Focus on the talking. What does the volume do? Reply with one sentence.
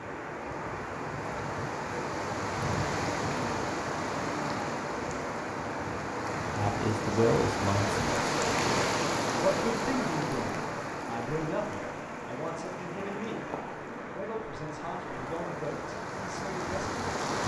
The loudness of the talking goes down.